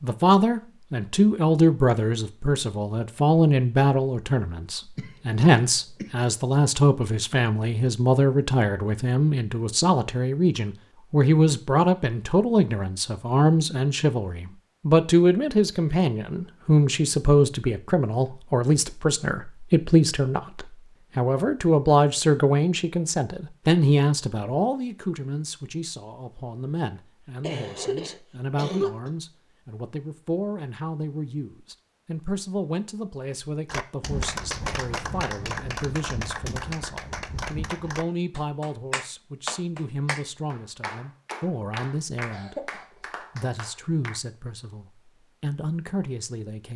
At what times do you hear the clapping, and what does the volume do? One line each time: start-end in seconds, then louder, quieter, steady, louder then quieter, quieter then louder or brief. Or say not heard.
33.6-44.2 quieter.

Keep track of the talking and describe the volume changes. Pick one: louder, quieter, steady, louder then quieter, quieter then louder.
quieter.